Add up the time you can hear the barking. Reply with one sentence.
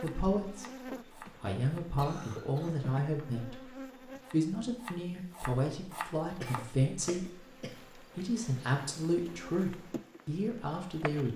The barking can't be heard in this clip.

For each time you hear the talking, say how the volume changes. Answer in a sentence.
You can hear the talking briefly from 0.0 to 0.7 s; and from 1.4 to 11.3 s, at a steady volume.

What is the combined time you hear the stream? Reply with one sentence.
The stream can't be heard in this clip.